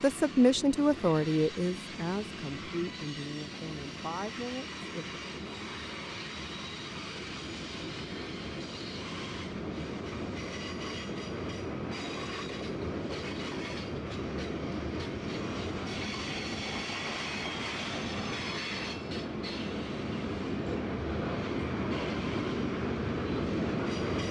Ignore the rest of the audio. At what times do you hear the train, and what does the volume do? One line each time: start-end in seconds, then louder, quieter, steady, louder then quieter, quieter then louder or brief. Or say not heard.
0.0-24.2 louder.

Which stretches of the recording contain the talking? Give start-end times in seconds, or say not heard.
0.0-5.2.